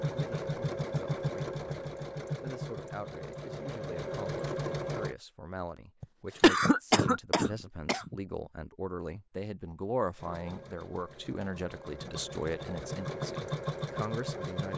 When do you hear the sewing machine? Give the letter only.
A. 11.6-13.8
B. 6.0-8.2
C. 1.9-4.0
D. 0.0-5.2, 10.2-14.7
D.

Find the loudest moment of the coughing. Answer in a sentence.
The loudest moment of the coughing is at 7 seconds.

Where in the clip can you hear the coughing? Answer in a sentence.
The coughing can be heard from 6.0 to 8.2 s.